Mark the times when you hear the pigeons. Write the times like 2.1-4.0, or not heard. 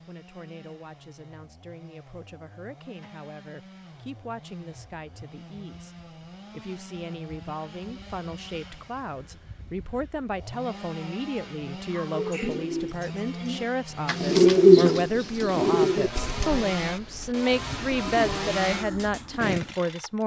11.9-19.6.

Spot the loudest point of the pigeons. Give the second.
15 s.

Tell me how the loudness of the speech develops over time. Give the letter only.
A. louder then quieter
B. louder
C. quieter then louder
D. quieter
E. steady
B.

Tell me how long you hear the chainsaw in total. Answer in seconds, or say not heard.
20 s.